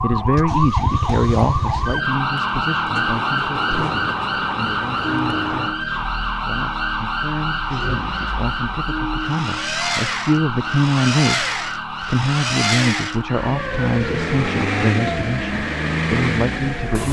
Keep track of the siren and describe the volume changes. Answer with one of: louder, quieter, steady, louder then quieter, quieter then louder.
quieter.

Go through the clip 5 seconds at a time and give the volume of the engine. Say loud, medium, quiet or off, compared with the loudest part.
medium, medium, loud, loud.